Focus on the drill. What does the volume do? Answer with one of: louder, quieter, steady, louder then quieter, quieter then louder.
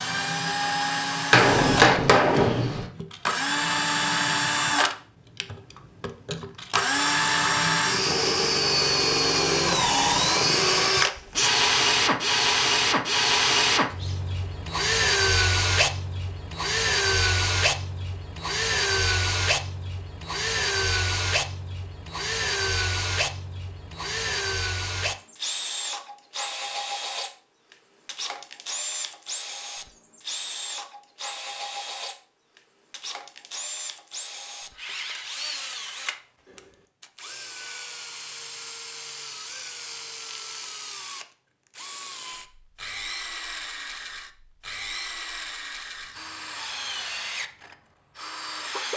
quieter.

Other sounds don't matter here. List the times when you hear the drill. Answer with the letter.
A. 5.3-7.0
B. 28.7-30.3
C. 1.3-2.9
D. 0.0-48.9
D.